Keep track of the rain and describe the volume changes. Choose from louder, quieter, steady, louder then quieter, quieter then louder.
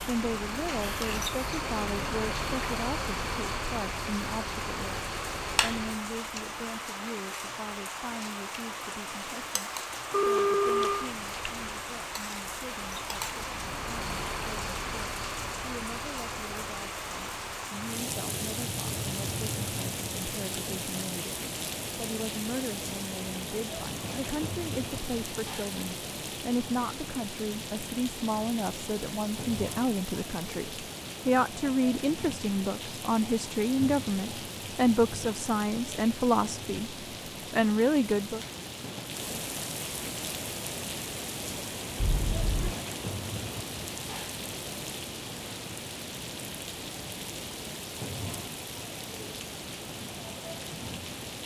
steady.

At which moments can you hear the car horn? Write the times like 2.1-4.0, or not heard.
10.1-11.1, 42.0-42.8.